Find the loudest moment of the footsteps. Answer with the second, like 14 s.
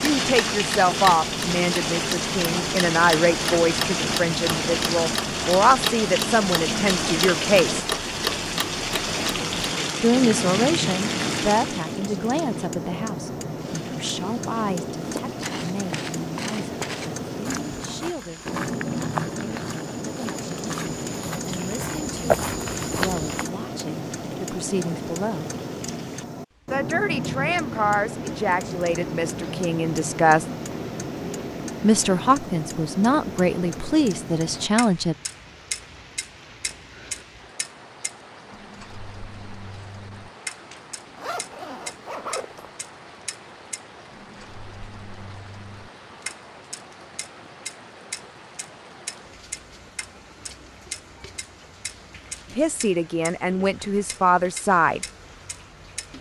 22 s.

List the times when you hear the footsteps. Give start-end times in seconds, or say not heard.
15.0-23.5.